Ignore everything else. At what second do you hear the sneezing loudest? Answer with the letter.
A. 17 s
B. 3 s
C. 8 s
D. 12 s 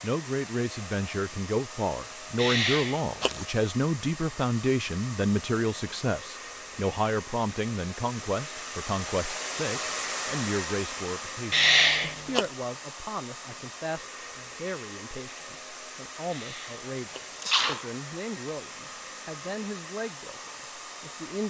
D.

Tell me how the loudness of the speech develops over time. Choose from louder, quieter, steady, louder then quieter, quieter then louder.
quieter.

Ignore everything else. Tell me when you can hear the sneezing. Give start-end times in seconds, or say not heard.
2.4-3.5, 11.5-12.4, 16.3-17.9.